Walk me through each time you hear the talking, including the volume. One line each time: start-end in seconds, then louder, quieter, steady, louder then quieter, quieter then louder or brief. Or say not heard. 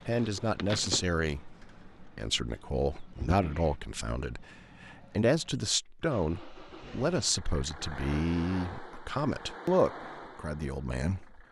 0.1-11.4 steady.